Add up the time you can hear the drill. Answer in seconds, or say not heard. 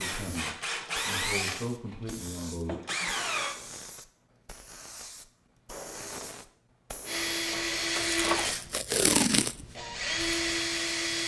8 s.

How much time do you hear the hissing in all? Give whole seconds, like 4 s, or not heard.
11 s.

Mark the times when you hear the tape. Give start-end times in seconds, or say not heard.
8.1-9.7.